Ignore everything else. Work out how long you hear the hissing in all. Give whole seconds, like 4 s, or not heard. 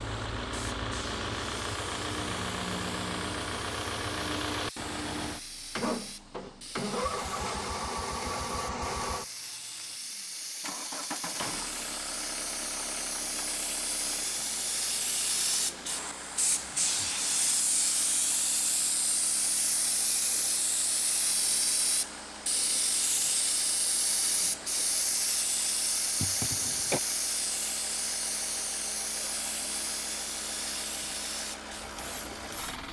33 s.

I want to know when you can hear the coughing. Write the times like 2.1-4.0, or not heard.
26.1-27.0.